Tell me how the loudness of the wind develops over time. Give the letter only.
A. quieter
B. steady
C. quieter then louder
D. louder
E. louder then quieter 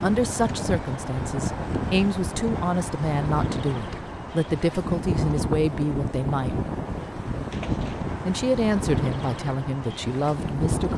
B.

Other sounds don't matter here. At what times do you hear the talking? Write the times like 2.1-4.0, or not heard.
0.0-6.6, 8.2-10.9.